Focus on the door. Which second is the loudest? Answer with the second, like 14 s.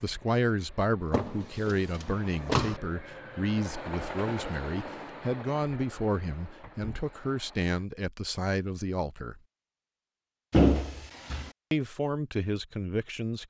11 s.